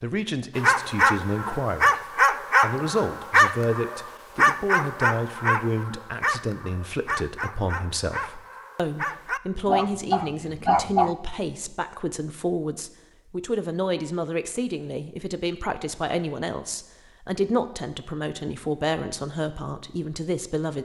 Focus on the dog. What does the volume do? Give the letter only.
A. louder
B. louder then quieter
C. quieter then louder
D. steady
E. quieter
C.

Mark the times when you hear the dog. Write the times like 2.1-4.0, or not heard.
0.6-11.1.